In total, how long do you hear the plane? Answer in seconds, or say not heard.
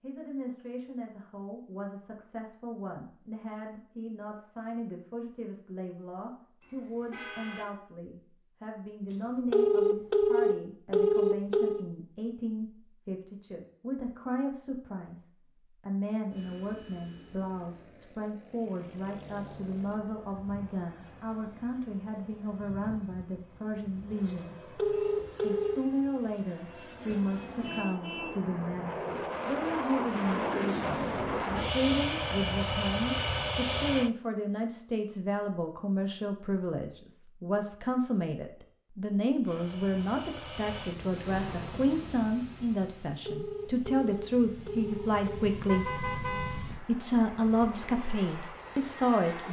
28 s.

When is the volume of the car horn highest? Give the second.
46 s.